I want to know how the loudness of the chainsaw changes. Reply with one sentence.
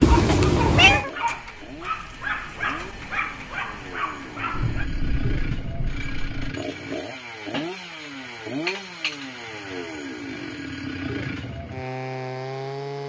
The volume of the chainsaw goes up.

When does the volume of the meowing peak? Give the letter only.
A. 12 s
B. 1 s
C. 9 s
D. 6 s
B.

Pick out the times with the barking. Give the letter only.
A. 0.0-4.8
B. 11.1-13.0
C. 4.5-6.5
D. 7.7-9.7
A.